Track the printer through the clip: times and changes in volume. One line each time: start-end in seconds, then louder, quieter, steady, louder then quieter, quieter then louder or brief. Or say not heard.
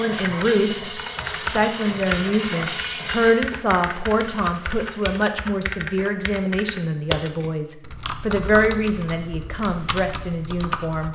0.0-5.4 quieter.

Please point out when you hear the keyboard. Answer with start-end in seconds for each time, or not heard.
0.1-11.1.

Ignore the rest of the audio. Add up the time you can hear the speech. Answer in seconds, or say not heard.
11 s.